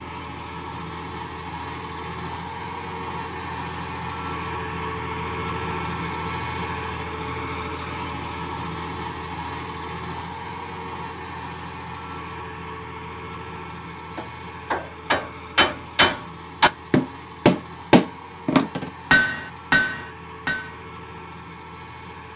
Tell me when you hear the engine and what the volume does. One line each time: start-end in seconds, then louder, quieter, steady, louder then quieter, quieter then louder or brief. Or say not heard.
0.0-22.3 quieter.